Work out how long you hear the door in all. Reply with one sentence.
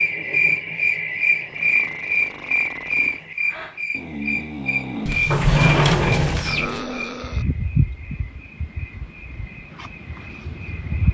You can hear the door for 2 seconds altogether.